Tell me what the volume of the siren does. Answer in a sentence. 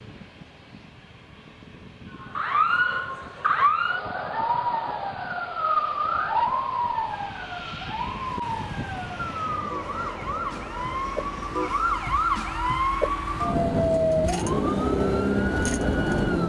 The loudness of the siren goes down, then up.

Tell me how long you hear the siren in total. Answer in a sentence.
You can hear the siren for 14 seconds altogether.